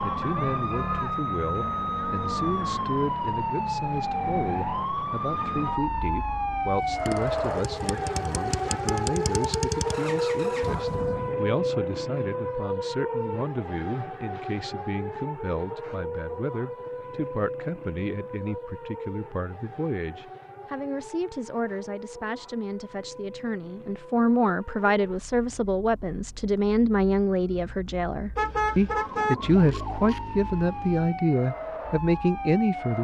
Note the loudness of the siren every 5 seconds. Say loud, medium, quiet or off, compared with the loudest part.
loud, loud, loud, medium, quiet, quiet, medium.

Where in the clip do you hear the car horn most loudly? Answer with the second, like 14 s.
29 s.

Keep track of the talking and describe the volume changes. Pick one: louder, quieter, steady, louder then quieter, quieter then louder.
louder.